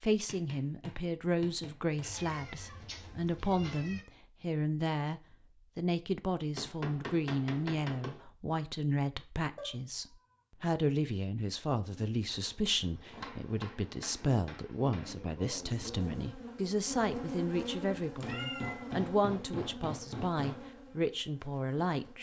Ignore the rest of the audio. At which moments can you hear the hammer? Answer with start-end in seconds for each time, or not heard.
0.2-2.1, 6.5-8.2, 13.1-15.2, 18.2-20.6.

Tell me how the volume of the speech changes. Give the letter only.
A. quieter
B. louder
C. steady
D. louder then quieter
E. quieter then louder
C.